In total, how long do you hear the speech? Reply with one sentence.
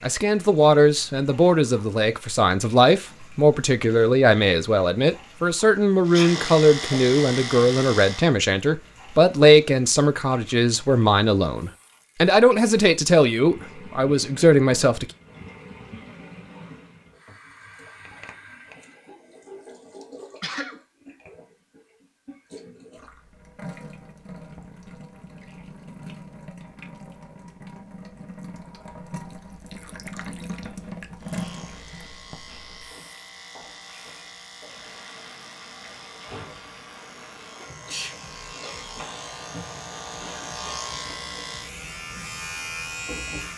You can hear the speech for 15 seconds altogether.